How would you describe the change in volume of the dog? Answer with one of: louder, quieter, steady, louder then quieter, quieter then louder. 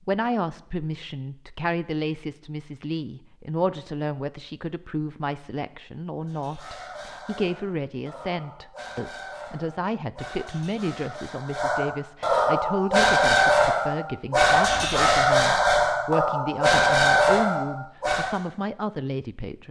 louder.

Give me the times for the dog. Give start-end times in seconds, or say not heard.
6.2-18.4.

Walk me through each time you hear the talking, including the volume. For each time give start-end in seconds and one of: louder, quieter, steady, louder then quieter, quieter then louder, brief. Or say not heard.
0.1-19.6 steady.